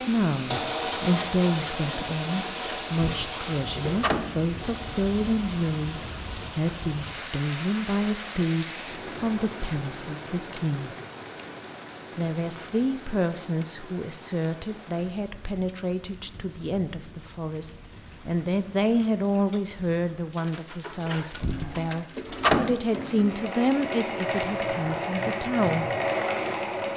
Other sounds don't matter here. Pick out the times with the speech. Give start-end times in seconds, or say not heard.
0.1-10.9, 12.2-25.9.